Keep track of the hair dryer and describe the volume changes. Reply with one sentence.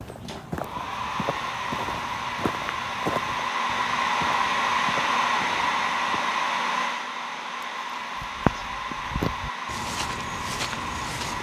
The volume of the hair dryer goes up, then down.